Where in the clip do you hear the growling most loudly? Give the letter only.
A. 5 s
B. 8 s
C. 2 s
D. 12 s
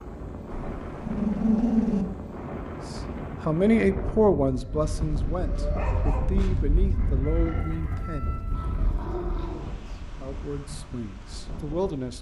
C.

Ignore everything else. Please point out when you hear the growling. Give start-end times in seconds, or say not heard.
0.5-2.0, 4.5-6.3, 8.5-10.0.